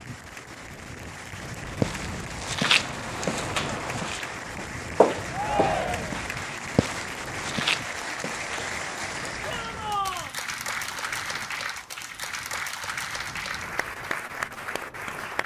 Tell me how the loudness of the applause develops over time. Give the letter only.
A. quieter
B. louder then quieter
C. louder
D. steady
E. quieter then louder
C.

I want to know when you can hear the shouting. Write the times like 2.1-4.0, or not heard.
5.3-6.2, 9.4-10.3.